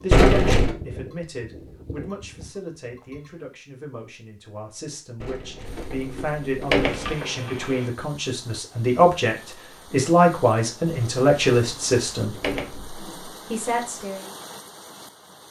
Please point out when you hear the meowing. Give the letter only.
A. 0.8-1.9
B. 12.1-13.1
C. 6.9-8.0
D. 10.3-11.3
C.